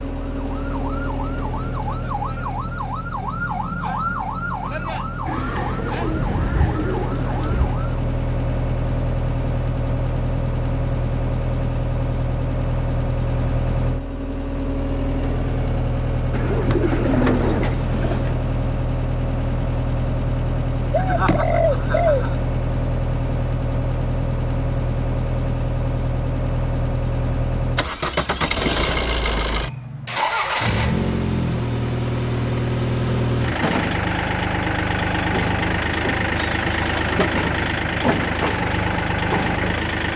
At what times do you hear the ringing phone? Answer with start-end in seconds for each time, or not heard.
not heard.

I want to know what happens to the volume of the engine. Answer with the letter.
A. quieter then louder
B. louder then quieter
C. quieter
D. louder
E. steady
D.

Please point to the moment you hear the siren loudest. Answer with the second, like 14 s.
4 s.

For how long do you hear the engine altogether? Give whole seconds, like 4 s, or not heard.
40 s.